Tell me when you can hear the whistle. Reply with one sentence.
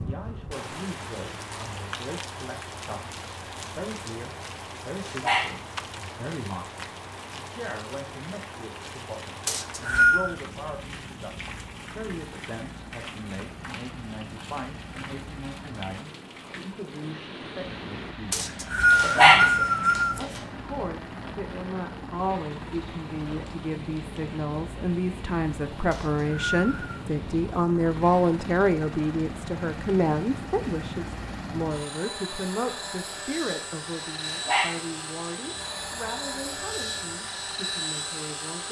The whistle can be heard from 9.4 to 10.3 s, from 18.3 to 20.2 s and from 25.9 to 26.9 s.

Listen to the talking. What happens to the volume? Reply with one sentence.
The volume of the talking goes up, then down.